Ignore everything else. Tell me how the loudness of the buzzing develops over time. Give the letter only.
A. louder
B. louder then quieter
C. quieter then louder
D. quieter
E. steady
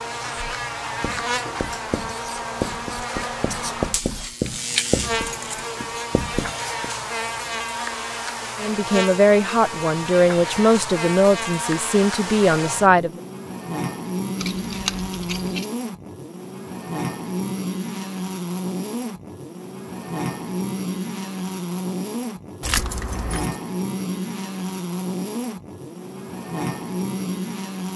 E.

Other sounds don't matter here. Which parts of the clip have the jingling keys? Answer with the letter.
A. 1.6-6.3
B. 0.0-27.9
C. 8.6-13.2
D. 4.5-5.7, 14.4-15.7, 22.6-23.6
D.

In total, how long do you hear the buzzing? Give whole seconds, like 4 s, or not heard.
28 s.